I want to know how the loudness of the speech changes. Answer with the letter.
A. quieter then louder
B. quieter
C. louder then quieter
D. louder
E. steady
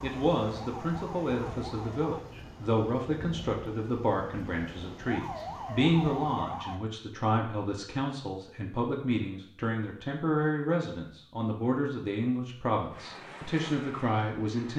E.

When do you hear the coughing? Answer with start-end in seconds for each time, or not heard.
not heard.